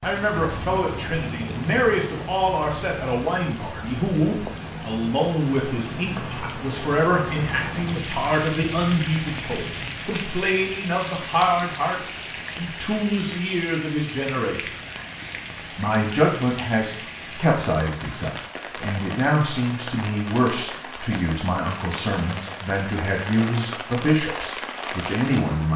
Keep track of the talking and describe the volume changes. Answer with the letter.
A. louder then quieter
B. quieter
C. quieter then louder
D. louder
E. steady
E.